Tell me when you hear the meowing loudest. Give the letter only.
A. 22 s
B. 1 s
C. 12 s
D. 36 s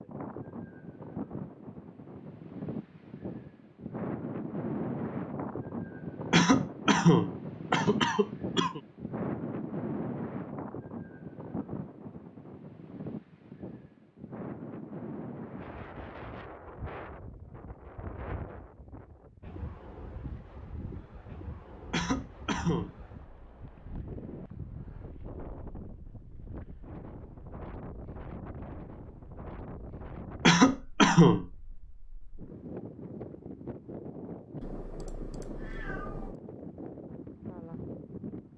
D.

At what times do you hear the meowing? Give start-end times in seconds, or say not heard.
34.6-36.4.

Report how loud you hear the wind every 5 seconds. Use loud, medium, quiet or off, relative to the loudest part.
loud, loud, medium, medium, medium, medium, medium, medium.